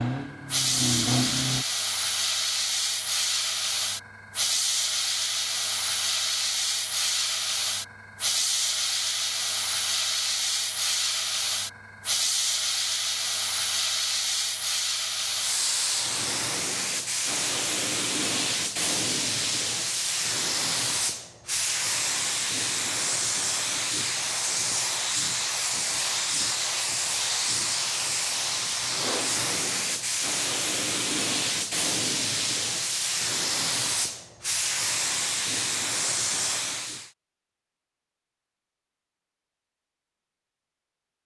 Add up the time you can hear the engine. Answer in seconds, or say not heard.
2 s.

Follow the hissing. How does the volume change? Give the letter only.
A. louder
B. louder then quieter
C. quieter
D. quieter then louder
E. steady
E.